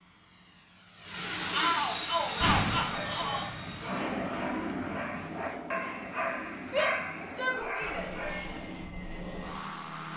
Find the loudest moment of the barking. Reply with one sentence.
The loudest moment of the barking is at 7 seconds.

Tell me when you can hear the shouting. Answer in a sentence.
The shouting can be heard from 1.5 to 3.5 s and from 6.6 to 8.1 s.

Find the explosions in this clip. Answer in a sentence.
You can hear the explosions from 2.4 to 3.2 s.